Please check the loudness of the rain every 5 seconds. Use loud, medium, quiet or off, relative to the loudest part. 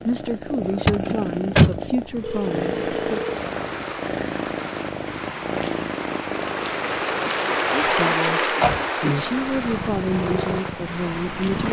medium, loud, medium.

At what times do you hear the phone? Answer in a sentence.
The phone can be heard from 2.2 to 3.5 s.